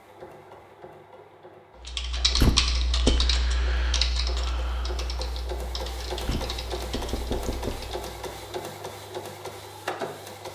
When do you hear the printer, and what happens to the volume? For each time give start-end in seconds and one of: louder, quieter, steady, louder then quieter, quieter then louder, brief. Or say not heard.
0.0-10.5 louder.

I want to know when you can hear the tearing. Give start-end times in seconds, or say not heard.
not heard.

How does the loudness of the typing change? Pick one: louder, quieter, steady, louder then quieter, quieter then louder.
quieter.